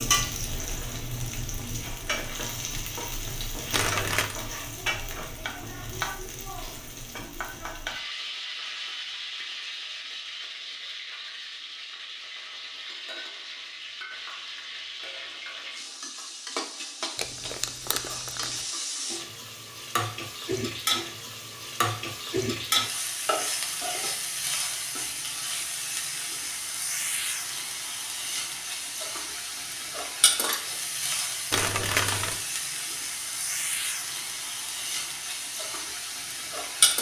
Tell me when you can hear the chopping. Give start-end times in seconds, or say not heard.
not heard.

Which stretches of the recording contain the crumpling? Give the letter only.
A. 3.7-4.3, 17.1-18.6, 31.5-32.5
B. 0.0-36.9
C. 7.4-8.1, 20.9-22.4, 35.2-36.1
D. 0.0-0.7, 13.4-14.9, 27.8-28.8
A.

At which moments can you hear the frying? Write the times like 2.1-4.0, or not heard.
0.0-36.9.